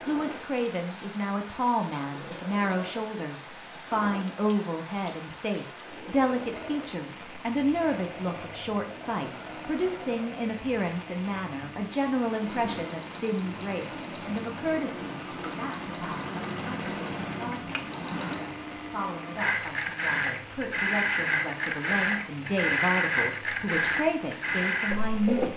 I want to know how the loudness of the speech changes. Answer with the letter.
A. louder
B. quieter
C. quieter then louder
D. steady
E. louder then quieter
C.